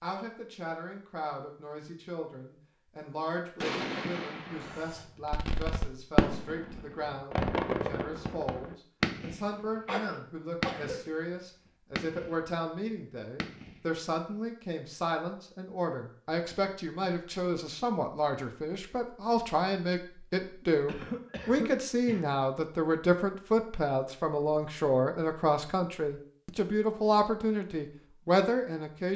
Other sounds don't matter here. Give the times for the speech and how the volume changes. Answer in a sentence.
The speech can be heard from 0.0 to 29.1 s, getting louder.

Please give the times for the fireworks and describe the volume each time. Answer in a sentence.
The fireworks can be heard from 3.6 to 9.4 s, getting louder then quieter; briefly from 10.6 to 11.1 s; briefly from 11.9 to 12.3 s; and briefly from 13.3 to 13.8 s.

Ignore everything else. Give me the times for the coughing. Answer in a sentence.
The coughing can be heard from 4.5 to 5.4 s, from 9.8 to 11.0 s and from 20.9 to 22.2 s.